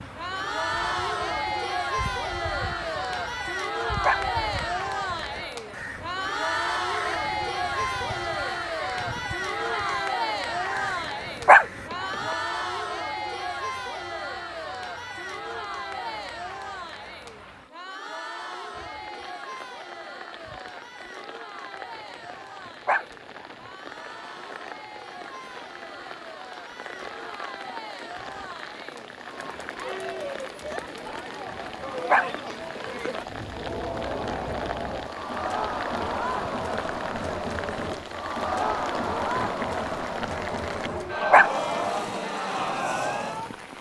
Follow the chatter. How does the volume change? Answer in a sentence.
The volume of the chatter goes down, then up.